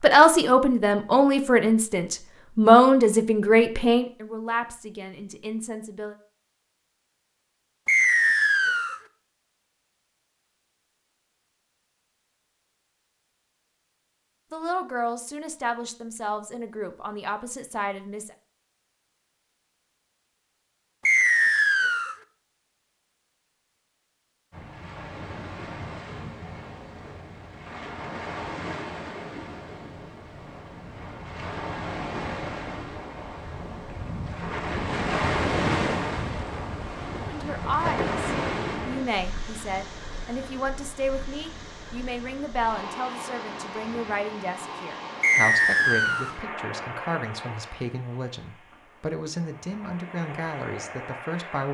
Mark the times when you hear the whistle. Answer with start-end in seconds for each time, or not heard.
7.8-9.0, 21.1-22.1, 45.2-46.4.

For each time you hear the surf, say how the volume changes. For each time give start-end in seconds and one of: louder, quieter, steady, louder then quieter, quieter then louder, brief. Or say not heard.
24.5-51.6 louder then quieter.